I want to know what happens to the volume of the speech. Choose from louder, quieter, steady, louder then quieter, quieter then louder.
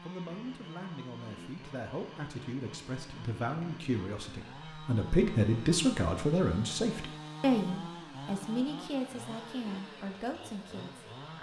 louder then quieter.